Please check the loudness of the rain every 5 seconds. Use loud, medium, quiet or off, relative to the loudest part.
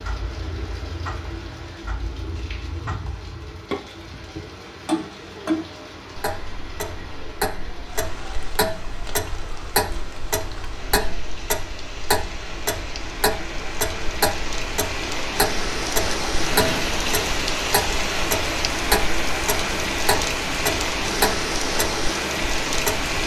quiet, quiet, medium, loud, loud.